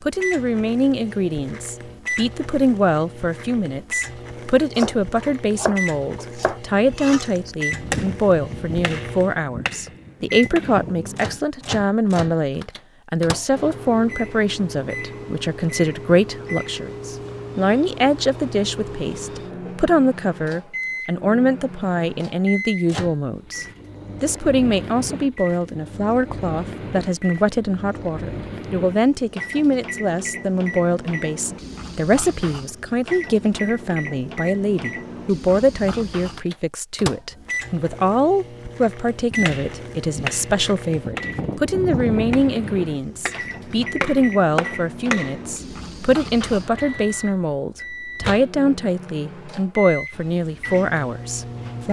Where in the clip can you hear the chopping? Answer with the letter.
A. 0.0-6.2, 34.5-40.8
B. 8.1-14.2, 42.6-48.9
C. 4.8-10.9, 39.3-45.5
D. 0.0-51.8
C.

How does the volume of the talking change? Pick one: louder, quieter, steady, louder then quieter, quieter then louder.
steady.